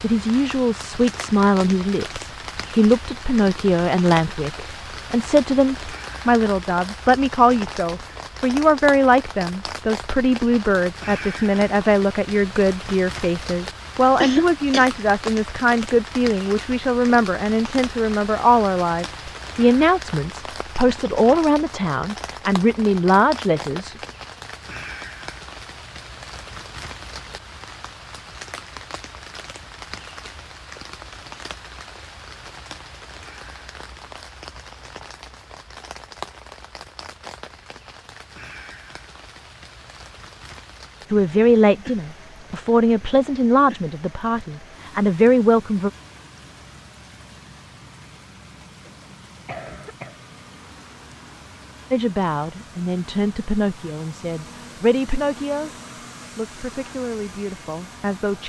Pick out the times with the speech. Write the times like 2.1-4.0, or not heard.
0.0-23.9, 41.1-45.9, 51.9-55.7, 56.4-58.4.